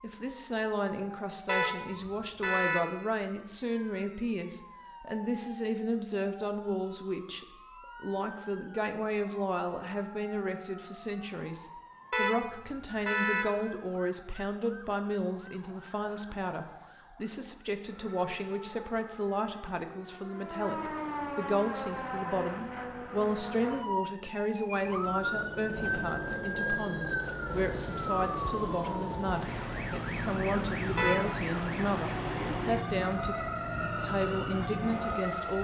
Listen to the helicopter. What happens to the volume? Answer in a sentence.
The loudness of the helicopter stays about the same.